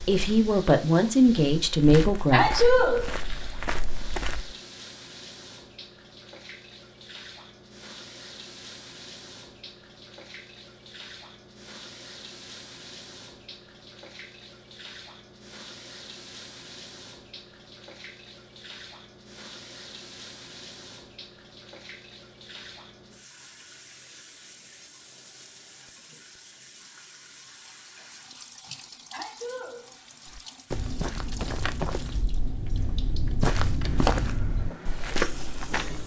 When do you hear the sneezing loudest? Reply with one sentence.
The loudest moment of the sneezing is at 3 seconds.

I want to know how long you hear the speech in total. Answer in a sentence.
You can hear the speech for 3 seconds altogether.